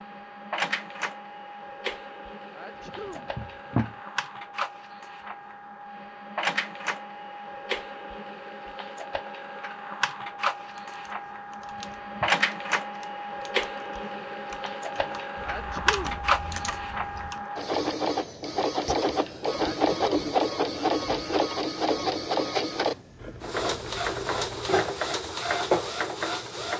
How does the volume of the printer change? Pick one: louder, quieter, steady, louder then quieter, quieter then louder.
louder.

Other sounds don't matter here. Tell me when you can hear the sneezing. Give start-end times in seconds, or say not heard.
2.5-3.3, 15.4-16.2, 19.6-20.4.